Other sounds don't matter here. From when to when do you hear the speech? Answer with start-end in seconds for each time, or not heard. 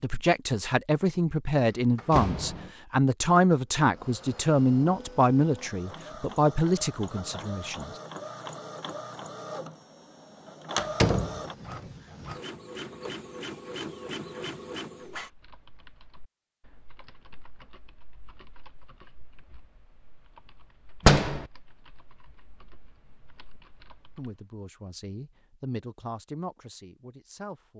0.0-7.9, 24.1-27.7.